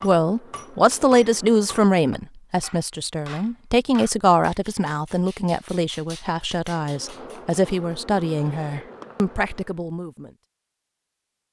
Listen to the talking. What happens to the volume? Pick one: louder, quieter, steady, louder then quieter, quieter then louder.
quieter.